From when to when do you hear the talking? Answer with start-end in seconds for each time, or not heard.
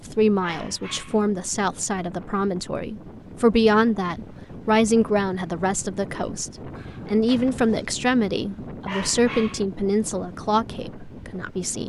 0.1-11.8.